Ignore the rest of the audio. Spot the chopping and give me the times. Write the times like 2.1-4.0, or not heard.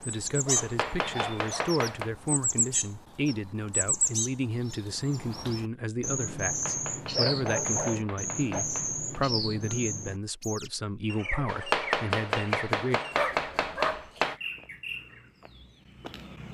0.6-2.1, 6.5-9.2, 11.4-14.3.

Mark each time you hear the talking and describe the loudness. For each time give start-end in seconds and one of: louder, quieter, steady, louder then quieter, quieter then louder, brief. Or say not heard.
0.1-13.0 steady.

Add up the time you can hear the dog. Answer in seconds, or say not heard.
4 s.